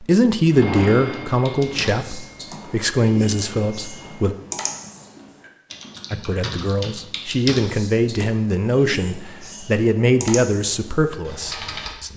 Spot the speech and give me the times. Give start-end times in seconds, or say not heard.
0.0-4.3, 6.1-12.1.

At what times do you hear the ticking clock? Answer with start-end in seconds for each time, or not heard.
not heard.